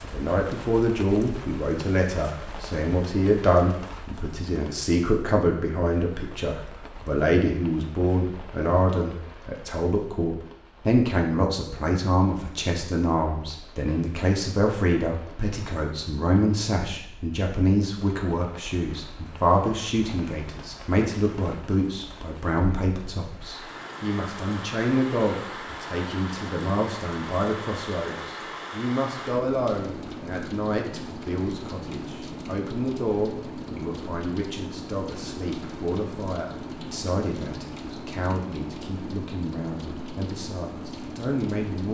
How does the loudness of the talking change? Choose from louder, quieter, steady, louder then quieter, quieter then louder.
quieter.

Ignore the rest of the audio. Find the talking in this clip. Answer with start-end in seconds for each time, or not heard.
0.0-41.8.